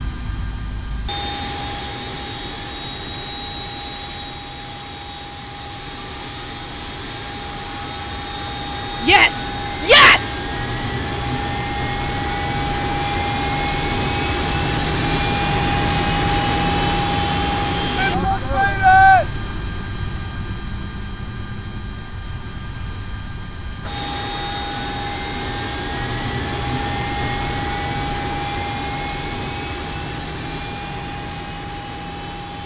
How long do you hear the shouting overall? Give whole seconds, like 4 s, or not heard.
3 s.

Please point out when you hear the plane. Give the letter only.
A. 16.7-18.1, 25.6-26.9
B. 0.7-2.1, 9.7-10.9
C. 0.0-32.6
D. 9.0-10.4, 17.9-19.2
C.